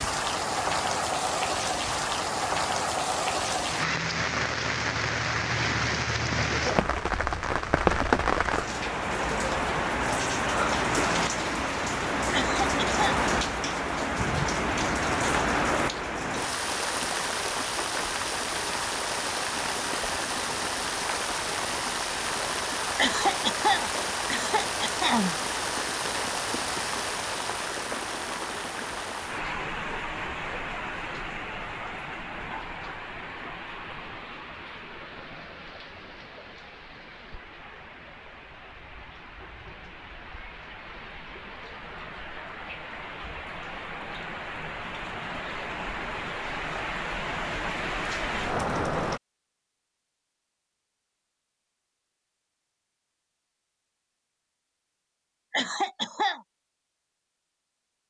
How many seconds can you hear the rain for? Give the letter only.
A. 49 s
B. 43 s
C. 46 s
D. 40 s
A.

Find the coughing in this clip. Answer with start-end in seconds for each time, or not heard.
12.3-13.2, 22.9-25.4, 55.5-56.4.